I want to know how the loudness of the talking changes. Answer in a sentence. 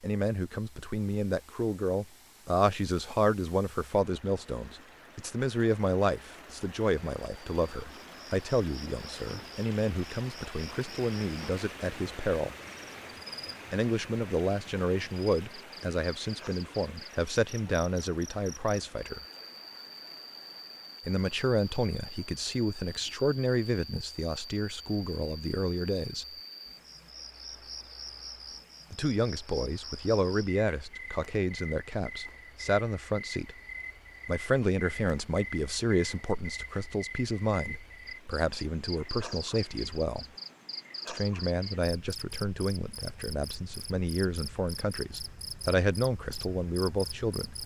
The volume of the talking stays about the same.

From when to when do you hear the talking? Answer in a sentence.
You can hear the talking from 0.0 to 12.6 s, from 13.7 to 19.2 s, from 21.1 to 26.2 s, from 28.9 to 33.5 s, from 34.2 to 40.2 s and from 41.0 to 47.5 s.